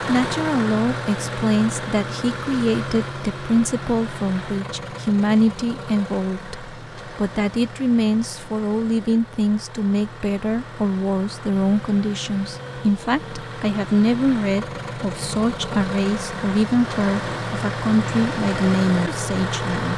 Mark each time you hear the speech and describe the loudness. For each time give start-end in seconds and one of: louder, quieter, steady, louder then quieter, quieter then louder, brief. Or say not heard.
0.1-19.9 steady.